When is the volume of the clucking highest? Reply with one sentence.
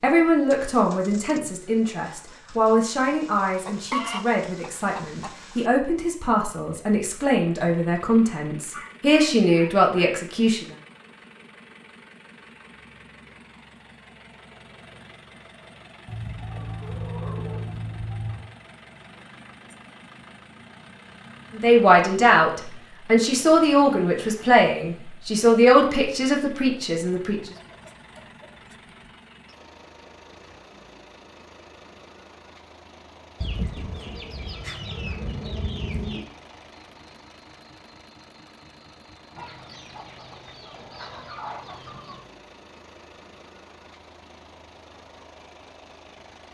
The volume of the clucking peaks at 4 seconds.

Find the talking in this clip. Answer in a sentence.
The talking can be heard from 0.0 to 10.7 s and from 21.6 to 27.5 s.